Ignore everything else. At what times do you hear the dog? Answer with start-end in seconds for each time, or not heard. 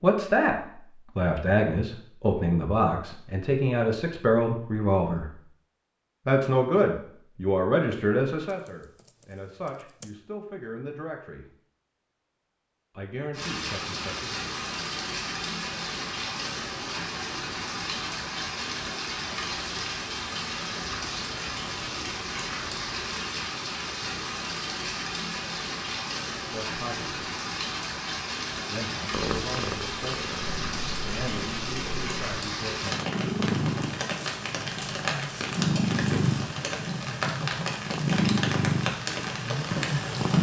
not heard.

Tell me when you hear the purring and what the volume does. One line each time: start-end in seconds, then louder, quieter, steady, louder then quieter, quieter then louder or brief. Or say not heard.
29.1-40.3 louder.